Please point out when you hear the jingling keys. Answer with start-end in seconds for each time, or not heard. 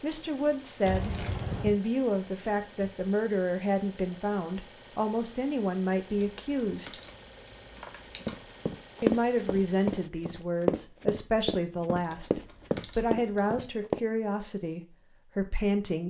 0.8-1.7, 6.1-8.6, 12.0-13.4.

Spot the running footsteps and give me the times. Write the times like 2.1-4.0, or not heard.
8.2-14.0.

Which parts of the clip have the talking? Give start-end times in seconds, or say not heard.
0.0-7.0, 9.0-16.0.